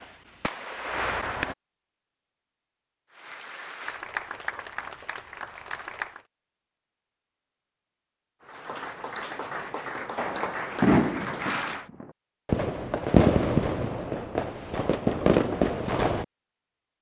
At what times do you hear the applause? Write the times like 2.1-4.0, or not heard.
3.1-6.2, 8.4-11.8.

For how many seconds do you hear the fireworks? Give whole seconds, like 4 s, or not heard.
8 s.